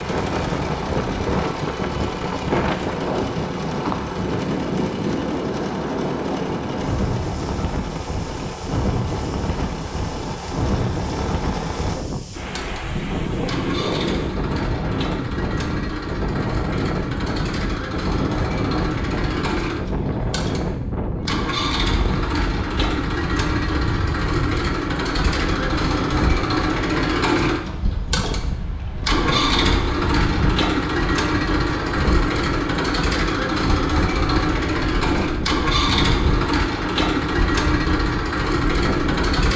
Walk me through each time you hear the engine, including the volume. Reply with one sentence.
The engine can be heard from 0.0 to 39.5 s, getting louder.